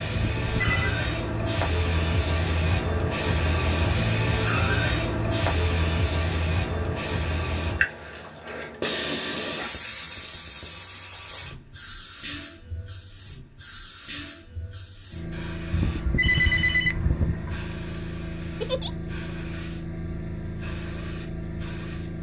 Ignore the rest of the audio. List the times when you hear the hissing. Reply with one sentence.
You can hear the hissing from 0.0 to 22.1 s.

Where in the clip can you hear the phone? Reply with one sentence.
You can hear the phone from 0.3 to 0.9 s and from 15.7 to 17.6 s.